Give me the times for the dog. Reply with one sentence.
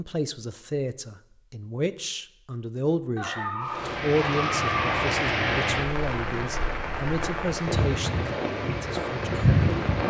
The dog can be heard from 3.1 to 5.2 s.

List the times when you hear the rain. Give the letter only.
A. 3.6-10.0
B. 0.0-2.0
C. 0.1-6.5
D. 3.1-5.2
A.